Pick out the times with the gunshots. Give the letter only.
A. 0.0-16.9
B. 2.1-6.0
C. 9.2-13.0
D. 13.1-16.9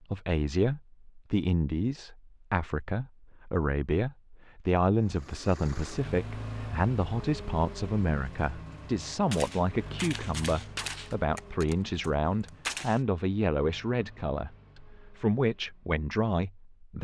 C.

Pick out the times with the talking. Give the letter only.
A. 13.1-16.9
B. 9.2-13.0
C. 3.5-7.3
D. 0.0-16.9
D.